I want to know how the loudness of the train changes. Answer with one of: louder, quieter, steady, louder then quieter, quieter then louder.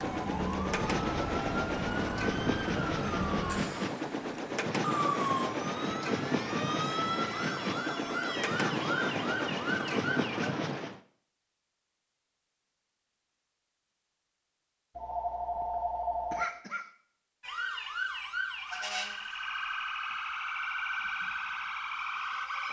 steady.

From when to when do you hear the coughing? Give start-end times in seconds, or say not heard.
16.3-16.9.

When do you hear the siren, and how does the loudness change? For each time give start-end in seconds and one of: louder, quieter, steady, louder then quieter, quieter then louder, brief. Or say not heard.
0.0-10.5 steady
17.4-22.6 steady.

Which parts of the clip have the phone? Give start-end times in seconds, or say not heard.
14.9-16.4.